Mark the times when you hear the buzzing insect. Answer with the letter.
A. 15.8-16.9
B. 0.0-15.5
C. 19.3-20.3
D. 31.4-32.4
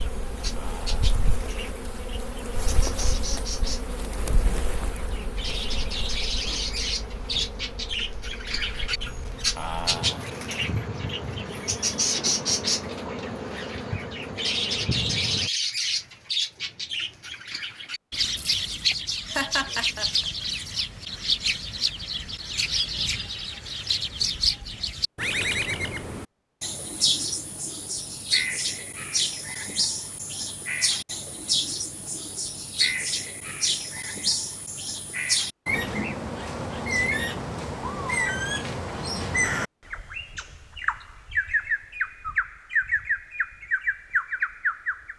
B.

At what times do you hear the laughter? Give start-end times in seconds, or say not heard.
19.3-20.3.